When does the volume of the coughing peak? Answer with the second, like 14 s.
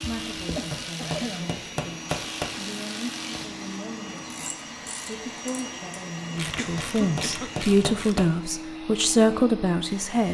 1 s.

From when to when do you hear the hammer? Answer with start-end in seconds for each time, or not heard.
0.7-2.5, 6.8-8.3.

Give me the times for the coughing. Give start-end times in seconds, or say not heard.
0.6-1.5, 6.4-7.7.